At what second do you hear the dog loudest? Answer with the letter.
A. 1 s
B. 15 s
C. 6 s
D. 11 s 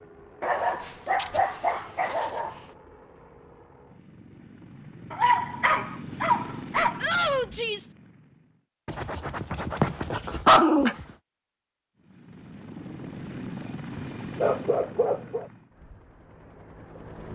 D.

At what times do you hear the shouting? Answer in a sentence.
You can hear the shouting from 7.0 to 8.0 s.